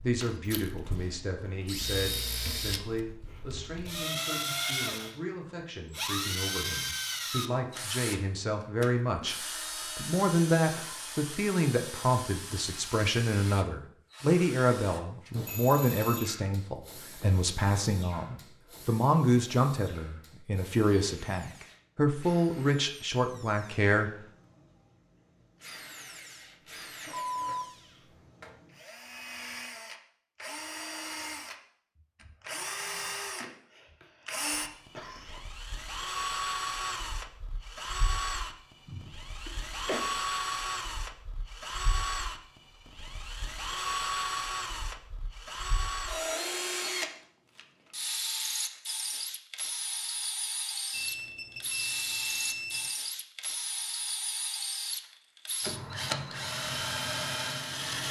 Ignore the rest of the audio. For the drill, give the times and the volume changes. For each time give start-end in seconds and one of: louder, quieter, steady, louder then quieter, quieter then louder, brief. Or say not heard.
0.0-58.0 quieter then louder.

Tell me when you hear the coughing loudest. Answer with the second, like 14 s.
40 s.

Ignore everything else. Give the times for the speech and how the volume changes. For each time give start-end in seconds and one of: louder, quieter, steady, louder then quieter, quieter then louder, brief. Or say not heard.
0.0-24.1 louder.